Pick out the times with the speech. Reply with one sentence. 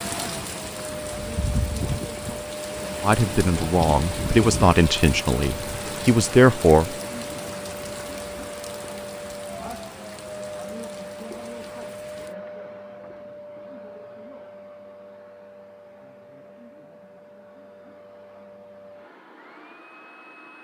The speech can be heard from 3.0 to 7.0 s.